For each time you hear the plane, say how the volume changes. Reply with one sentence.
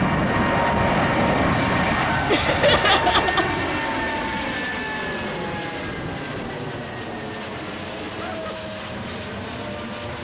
The plane can be heard from 0.0 to 10.1 s, getting quieter.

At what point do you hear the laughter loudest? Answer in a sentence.
The loudest moment of the laughter is at 3 seconds.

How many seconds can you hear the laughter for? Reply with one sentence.
You can hear the laughter for 2 seconds altogether.